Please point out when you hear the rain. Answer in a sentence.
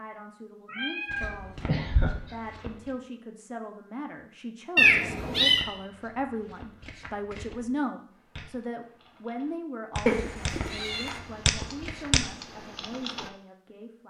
You can't hear the rain here.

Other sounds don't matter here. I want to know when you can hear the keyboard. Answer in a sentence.
You can hear the keyboard from 8.3 to 13.3 s.